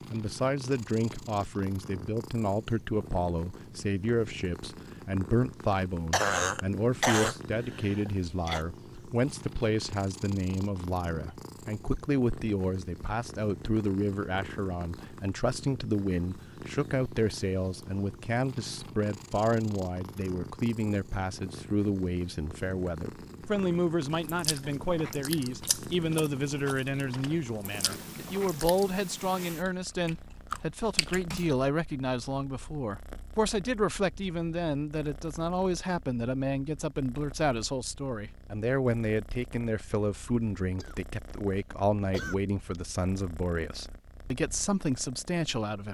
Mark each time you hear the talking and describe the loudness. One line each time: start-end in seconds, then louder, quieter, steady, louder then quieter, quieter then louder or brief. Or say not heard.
0.1-45.8 steady.